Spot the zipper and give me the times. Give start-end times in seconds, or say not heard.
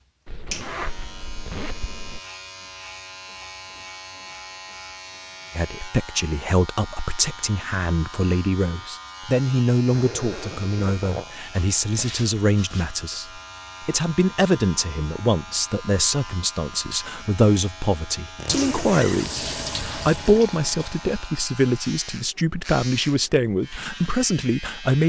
0.2-2.2, 9.9-11.3, 18.4-20.2.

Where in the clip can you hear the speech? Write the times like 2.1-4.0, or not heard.
5.5-25.0.